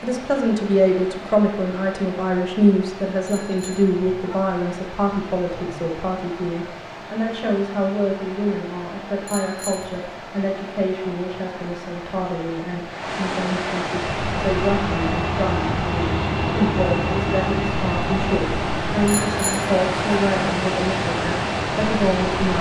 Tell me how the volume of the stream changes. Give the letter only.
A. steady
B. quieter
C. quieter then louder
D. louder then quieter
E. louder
E.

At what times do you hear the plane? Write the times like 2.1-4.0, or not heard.
14.0-22.5.